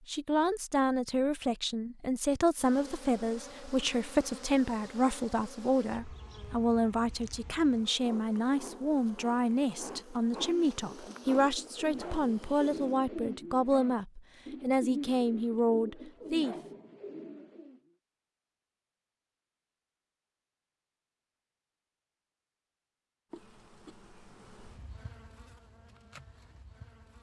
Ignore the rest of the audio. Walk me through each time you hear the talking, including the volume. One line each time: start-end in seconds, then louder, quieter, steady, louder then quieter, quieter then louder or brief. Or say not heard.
0.1-16.6 steady.